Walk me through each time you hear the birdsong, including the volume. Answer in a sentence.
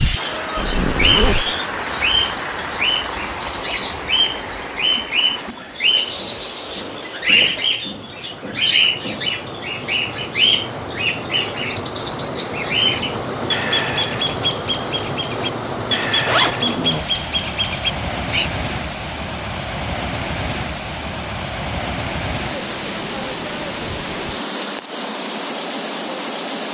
You can hear the birdsong from 0.0 to 18.5 s, at a steady volume.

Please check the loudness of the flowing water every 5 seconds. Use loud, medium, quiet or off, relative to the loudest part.
loud, medium, loud, loud, loud, loud.